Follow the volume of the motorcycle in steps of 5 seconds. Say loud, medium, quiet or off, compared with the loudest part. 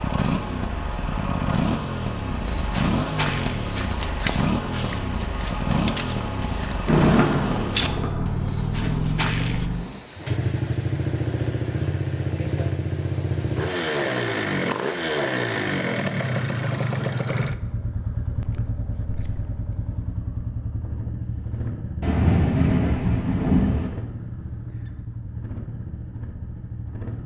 loud, loud, loud, loud, medium, medium.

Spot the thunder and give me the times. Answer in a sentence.
You can hear the thunder from 6.8 to 9.9 s and from 22.0 to 23.9 s.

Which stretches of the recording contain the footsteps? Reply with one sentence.
You can hear the footsteps from 2.2 to 9.7 s.